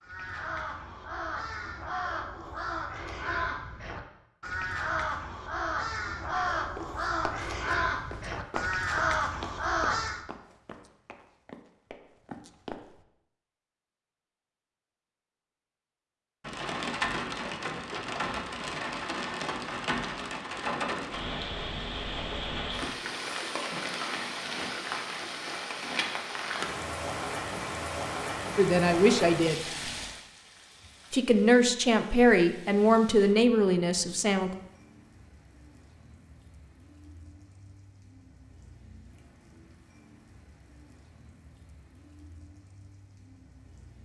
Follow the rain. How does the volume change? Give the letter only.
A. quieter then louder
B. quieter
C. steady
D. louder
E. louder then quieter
B.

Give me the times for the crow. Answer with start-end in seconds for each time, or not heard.
0.0-10.2.